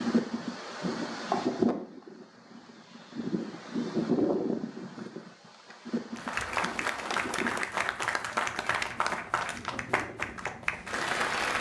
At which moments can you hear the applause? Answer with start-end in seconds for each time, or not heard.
6.2-11.5.